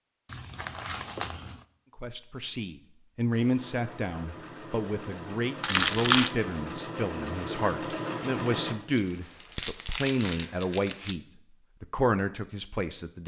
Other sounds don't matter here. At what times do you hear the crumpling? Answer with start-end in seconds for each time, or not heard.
0.3-1.6, 5.6-6.3, 8.9-11.2.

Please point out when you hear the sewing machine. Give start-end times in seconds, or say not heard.
3.3-8.8.